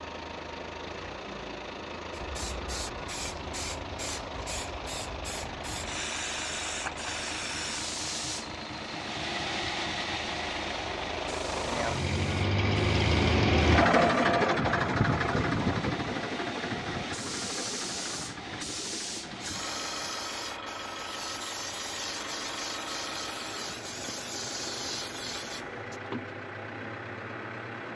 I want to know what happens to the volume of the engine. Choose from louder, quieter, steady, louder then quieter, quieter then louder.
louder then quieter.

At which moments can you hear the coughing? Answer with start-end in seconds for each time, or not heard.
not heard.